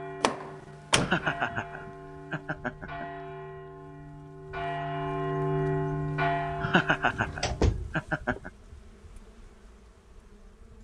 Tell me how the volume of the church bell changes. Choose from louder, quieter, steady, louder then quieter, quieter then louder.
louder.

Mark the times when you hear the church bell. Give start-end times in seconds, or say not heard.
0.0-7.8.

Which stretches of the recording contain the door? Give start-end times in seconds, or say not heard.
0.2-1.2, 6.6-8.4.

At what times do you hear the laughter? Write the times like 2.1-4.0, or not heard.
0.9-3.0, 6.6-8.5.